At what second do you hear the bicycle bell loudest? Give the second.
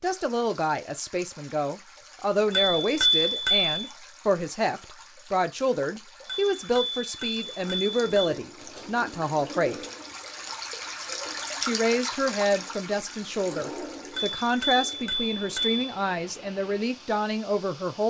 3 s.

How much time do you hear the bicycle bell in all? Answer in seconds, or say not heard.
5 s.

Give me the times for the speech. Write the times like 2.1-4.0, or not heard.
0.0-9.8, 11.6-18.0.